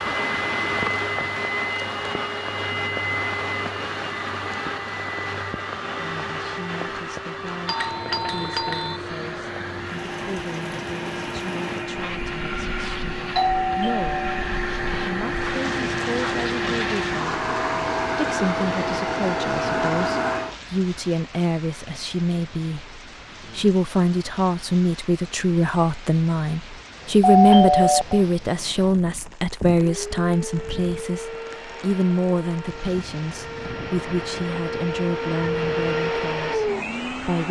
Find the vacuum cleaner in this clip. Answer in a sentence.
The vacuum cleaner can be heard from 0.0 to 20.6 s and from 29.8 to 37.4 s.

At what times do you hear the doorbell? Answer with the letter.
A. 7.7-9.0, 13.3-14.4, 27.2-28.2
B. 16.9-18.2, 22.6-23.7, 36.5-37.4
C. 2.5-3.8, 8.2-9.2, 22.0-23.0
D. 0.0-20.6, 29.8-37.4
A.